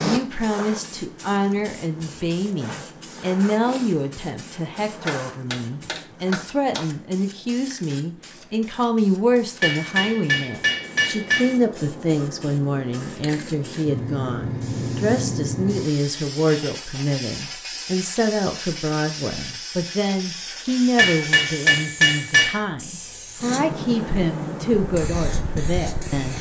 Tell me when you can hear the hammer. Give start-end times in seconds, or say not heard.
5.0-6.8, 9.6-11.6, 20.9-22.6.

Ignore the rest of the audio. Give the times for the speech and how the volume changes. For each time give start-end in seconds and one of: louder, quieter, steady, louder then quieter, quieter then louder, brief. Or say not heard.
0.0-26.3 steady.